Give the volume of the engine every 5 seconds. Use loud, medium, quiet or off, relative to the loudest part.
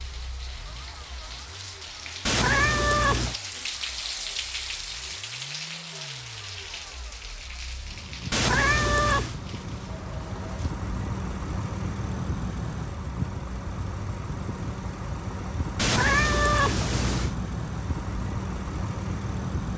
quiet, medium, loud, loud.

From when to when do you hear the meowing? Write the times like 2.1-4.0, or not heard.
2.2-3.4, 8.3-9.3, 15.8-17.4.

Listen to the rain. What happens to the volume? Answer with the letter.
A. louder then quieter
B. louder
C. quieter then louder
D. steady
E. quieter
A.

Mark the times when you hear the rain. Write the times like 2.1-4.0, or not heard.
0.0-10.8.